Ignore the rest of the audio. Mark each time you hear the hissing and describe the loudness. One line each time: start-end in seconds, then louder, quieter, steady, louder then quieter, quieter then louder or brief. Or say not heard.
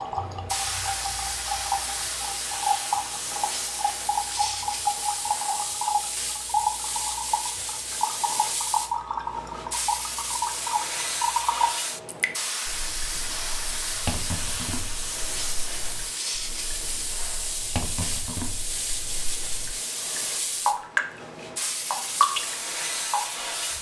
0.0-23.7 steady.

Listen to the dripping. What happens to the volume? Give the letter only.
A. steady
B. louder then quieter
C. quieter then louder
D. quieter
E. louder
C.